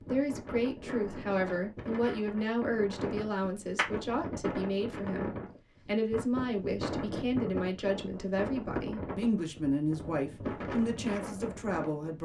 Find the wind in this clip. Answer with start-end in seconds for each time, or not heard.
0.0-12.2.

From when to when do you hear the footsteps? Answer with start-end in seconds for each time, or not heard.
not heard.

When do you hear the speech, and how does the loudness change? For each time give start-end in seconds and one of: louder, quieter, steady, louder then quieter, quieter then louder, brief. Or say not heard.
0.1-12.2 steady.